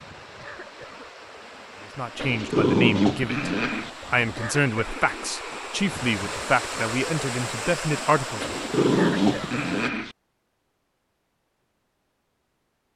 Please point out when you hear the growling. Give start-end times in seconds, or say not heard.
2.1-3.9, 8.4-10.2.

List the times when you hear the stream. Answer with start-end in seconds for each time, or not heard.
0.0-9.9.